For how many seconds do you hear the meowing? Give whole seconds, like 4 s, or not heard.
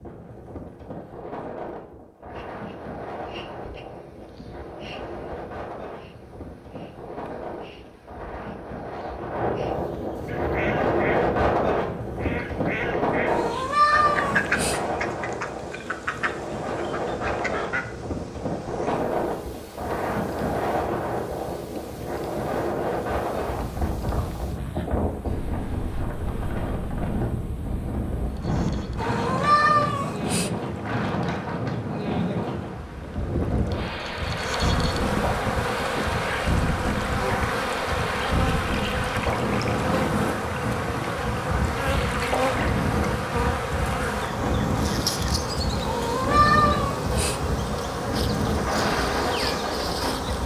5 s.